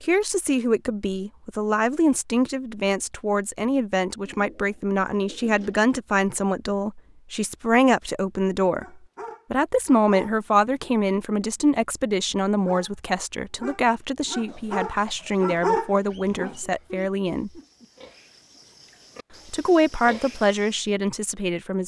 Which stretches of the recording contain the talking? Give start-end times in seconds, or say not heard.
0.0-8.8, 9.5-17.5, 19.5-21.8.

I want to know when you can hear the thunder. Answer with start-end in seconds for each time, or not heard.
not heard.